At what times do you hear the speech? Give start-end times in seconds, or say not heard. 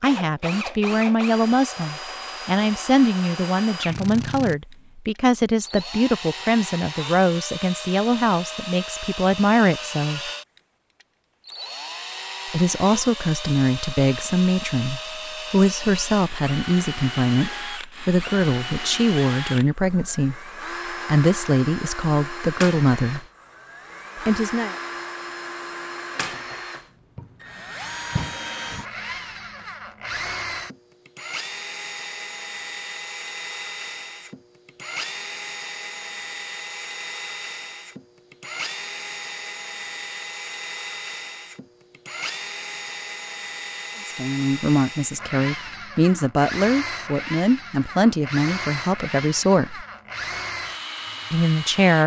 0.0-10.3, 12.5-23.2, 24.2-24.8, 44.0-49.9, 51.3-52.0.